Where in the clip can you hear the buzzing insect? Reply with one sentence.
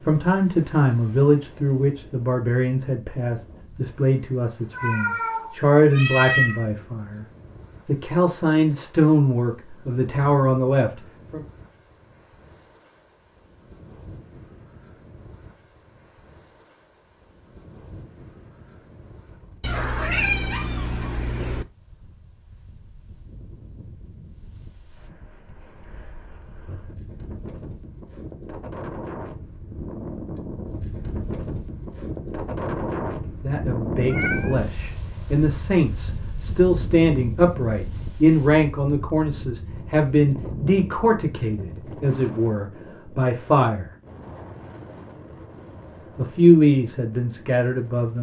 You can't hear the buzzing insect here.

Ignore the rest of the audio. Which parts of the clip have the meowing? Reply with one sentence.
The meowing can be heard from 4.7 to 6.7 s, from 19.6 to 21.6 s and from 34.1 to 34.5 s.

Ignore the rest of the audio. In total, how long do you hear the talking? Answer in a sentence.
The talking can be heard for 23 seconds in total.